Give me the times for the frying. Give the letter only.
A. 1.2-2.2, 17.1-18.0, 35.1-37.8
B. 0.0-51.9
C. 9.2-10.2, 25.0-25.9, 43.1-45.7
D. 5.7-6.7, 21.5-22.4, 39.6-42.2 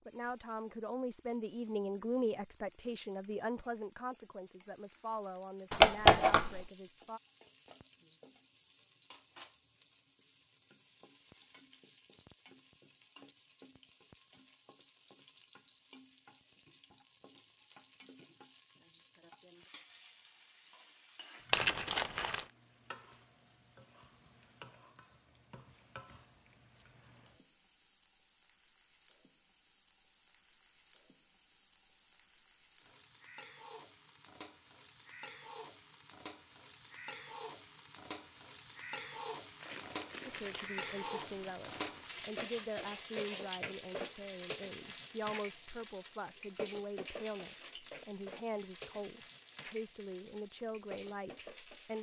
B.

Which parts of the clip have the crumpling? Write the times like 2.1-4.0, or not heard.
5.7-6.7, 21.5-22.4, 39.6-42.2.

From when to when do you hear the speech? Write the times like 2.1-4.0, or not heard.
0.1-7.2, 40.2-51.9.